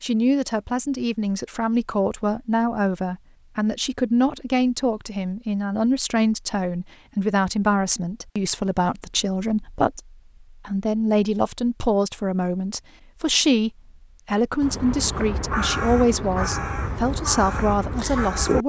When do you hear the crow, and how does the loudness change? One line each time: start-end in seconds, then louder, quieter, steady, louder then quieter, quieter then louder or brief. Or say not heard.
14.6-18.6 steady.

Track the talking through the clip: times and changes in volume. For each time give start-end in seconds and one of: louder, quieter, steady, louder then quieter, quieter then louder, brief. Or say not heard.
0.0-18.6 steady.